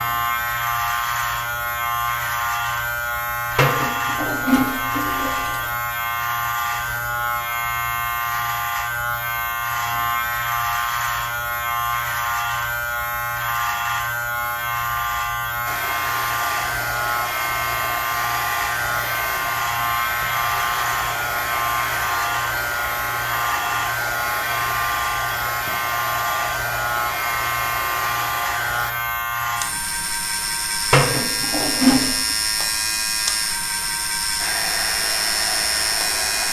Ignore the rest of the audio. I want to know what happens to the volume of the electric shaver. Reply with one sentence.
The loudness of the electric shaver stays about the same.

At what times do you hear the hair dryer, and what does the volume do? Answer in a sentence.
You can hear the hair dryer from 15.7 to 28.9 s, at a steady volume; and briefly from 34.4 to 36.4 s.